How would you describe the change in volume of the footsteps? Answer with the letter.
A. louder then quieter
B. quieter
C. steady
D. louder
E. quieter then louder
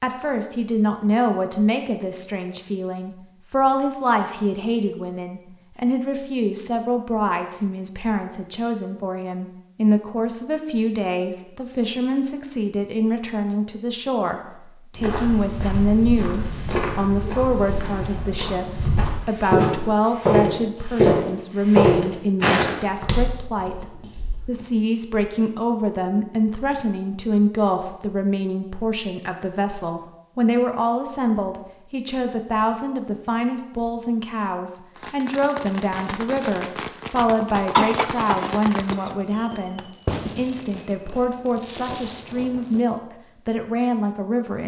A.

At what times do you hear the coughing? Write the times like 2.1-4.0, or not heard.
37.7-39.1.